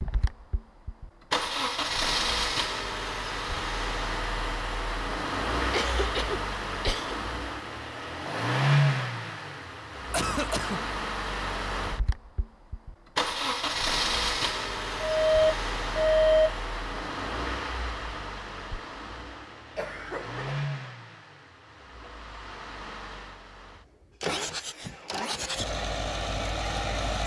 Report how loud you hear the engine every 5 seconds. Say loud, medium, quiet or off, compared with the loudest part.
loud, loud, loud, medium, medium, loud.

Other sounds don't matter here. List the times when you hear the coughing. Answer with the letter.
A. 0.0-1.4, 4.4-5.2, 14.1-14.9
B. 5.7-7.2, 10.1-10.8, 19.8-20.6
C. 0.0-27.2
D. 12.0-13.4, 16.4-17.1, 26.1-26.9
B.